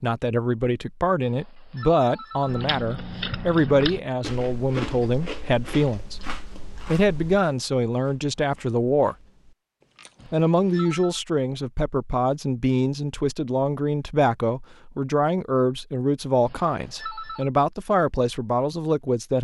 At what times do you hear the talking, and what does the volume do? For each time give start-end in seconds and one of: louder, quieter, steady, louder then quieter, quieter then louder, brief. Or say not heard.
0.0-9.2 steady
10.3-19.3 steady.